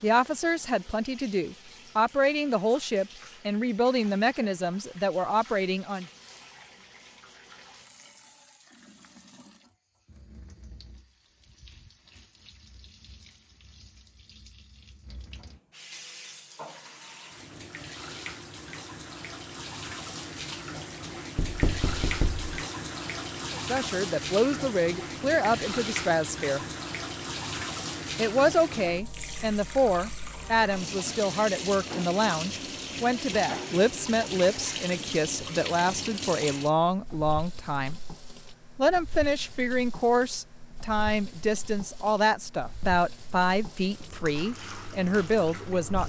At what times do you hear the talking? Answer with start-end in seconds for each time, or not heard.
0.0-6.0, 23.6-26.6, 28.1-38.0, 38.8-46.0.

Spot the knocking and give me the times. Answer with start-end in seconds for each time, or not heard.
21.4-22.5.